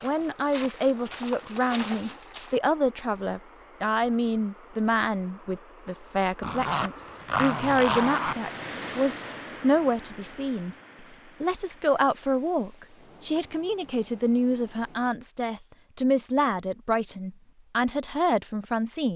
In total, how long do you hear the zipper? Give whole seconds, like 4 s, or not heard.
2 s.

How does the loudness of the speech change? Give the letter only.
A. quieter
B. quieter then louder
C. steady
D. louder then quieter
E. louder
C.